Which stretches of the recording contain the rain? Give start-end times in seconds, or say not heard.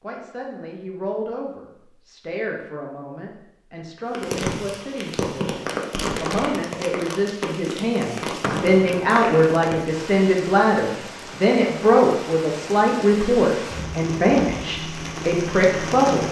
4.1-16.2.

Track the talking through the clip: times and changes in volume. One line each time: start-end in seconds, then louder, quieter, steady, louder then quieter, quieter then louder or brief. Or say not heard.
0.0-16.2 louder.